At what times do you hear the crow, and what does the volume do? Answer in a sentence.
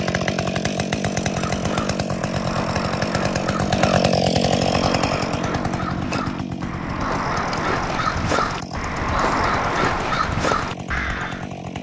You can hear the crow from 1.1 to 11.4 s, getting louder.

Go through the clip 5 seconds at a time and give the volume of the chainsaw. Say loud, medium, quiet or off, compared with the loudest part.
loud, medium, medium.